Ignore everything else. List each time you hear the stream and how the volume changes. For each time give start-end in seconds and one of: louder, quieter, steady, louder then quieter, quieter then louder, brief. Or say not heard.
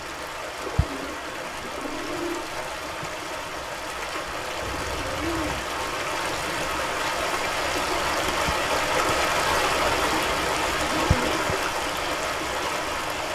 0.0-13.2 louder.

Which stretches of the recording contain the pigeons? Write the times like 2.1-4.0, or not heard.
0.6-2.5, 4.6-5.6, 9.9-11.4.